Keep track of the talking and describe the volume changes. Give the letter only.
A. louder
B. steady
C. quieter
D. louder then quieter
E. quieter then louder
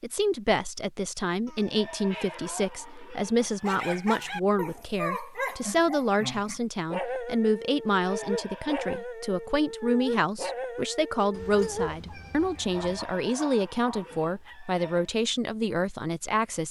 B.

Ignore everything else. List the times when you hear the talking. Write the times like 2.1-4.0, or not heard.
0.0-16.6.